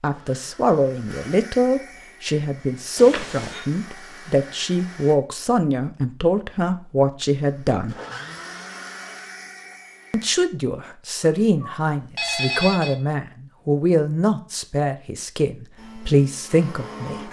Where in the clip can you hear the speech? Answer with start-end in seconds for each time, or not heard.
0.0-8.0, 10.1-17.2.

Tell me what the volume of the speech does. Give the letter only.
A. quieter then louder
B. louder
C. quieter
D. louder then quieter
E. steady
E.